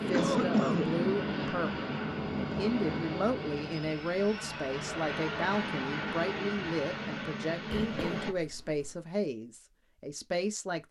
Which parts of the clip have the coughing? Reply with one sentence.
The coughing can be heard from 0.1 to 1.1 s and from 7.7 to 8.9 s.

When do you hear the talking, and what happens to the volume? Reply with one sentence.
You can hear the talking from 0.0 to 10.8 s, at a steady volume.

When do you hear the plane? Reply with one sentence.
The plane can be heard from 0.0 to 8.3 s.